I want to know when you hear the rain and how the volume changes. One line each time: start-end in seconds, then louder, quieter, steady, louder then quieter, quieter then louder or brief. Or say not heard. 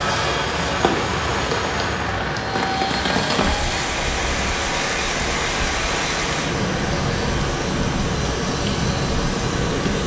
0.0-10.0 steady.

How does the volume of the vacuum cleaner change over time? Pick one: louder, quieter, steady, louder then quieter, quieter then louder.
steady.